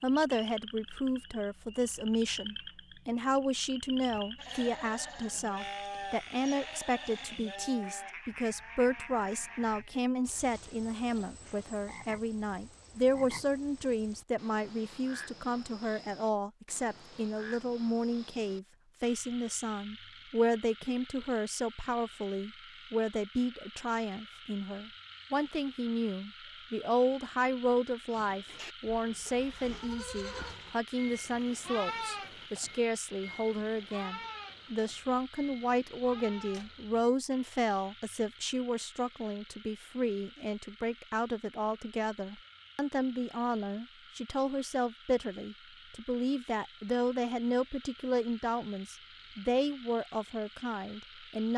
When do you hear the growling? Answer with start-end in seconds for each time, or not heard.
not heard.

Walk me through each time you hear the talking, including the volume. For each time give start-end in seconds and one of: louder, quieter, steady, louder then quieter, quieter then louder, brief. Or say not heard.
0.0-51.5 steady.